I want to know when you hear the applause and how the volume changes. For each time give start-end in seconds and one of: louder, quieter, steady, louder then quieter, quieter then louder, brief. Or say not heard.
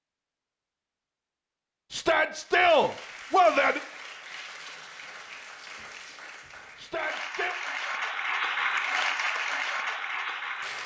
2.4-10.8 louder.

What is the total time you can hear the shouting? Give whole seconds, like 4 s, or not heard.
3 s.